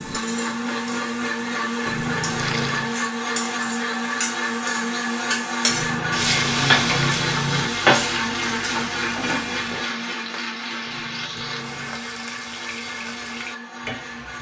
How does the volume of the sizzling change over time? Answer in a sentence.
The loudness of the sizzling goes up, then down.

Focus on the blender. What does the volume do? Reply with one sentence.
The loudness of the blender goes down.